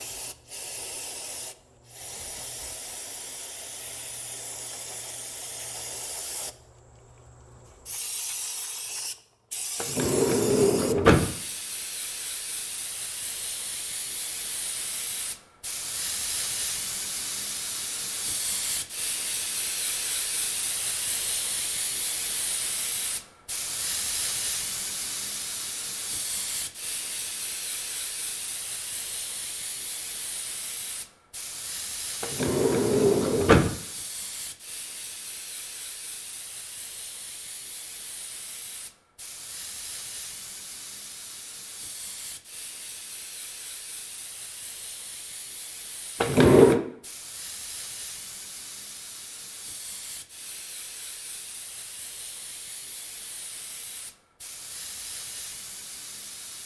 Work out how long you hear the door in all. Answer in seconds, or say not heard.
4 s.